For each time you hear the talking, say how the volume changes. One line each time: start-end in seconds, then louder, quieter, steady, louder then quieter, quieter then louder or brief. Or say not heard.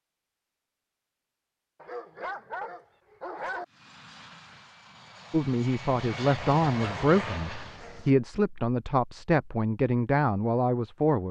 5.3-11.2 steady.